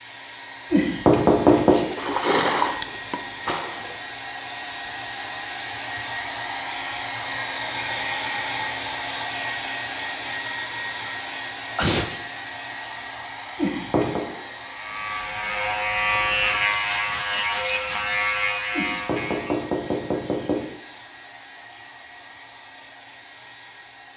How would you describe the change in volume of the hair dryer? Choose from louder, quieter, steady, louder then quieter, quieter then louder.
louder then quieter.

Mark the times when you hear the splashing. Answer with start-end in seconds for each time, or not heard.
1.9-4.0.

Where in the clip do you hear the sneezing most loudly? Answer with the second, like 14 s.
12 s.